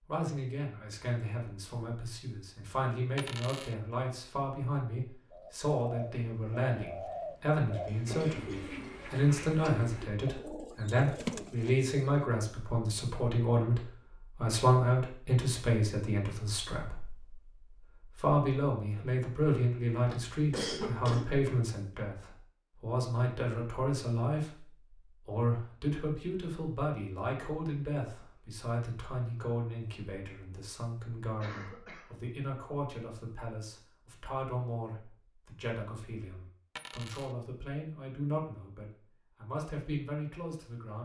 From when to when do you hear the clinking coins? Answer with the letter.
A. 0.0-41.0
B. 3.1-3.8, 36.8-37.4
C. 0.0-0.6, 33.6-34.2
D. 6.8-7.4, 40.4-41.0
B.